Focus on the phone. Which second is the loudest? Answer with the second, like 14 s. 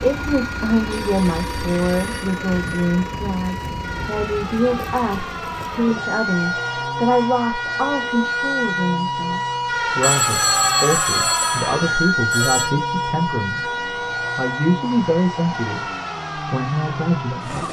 11 s.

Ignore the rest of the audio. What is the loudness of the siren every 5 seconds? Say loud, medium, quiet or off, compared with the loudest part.
medium, loud, loud, medium.